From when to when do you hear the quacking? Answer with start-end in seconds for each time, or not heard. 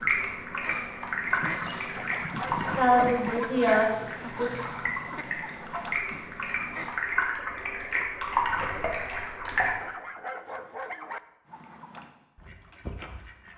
0.0-7.0, 11.4-13.5.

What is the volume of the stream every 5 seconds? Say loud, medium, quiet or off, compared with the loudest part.
loud, loud, off.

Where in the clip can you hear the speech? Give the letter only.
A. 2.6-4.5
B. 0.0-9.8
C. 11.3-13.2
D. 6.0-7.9
A.